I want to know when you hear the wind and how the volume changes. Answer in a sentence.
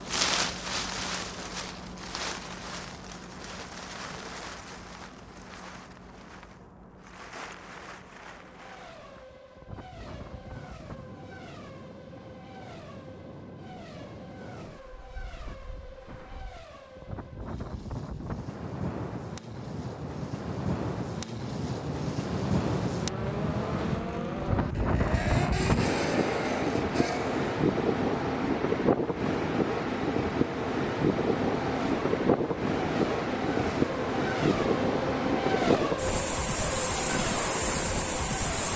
The wind can be heard from 0.0 to 38.7 s, getting quieter then louder.